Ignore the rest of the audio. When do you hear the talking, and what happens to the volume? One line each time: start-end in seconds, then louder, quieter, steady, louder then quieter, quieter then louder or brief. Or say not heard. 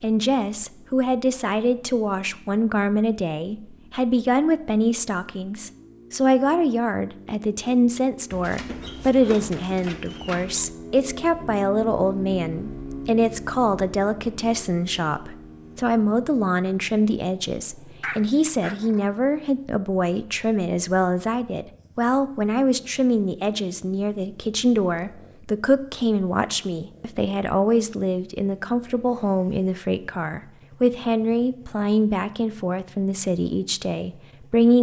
0.0-34.7 steady.